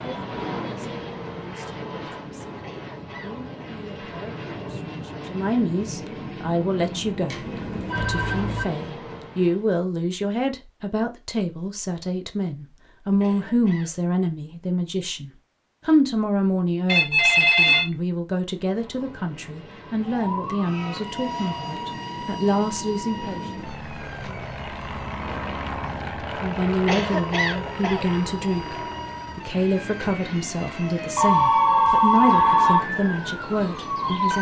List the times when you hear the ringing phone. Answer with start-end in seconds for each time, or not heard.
7.3-8.7, 16.9-17.9, 31.1-32.9.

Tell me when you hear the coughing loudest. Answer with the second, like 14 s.
27 s.